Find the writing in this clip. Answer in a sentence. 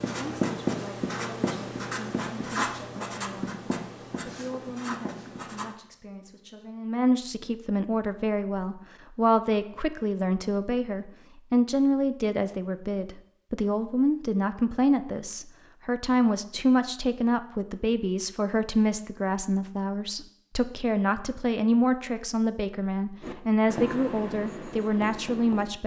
The writing can be heard from 0.0 to 5.8 s and from 23.2 to 25.7 s.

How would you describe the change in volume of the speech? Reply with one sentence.
The volume of the speech goes up.